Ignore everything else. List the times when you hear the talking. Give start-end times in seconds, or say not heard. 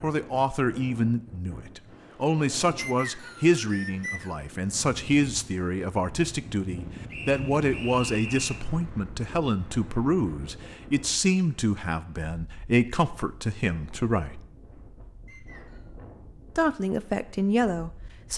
0.0-14.4, 16.6-18.3.